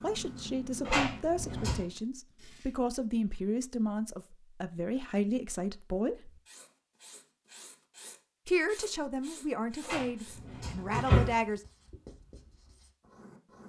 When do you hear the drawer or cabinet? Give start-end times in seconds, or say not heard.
0.8-1.9, 9.8-11.3.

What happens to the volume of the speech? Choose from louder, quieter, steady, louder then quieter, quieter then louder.
steady.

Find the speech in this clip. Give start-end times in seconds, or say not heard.
0.0-6.3, 8.4-11.6.